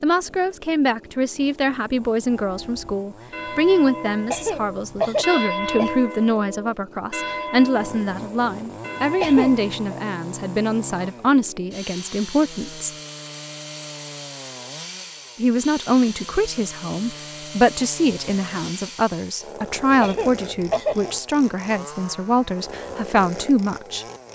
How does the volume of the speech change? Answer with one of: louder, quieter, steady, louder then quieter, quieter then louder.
steady.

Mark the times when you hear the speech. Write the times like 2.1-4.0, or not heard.
0.0-12.9, 15.3-24.1.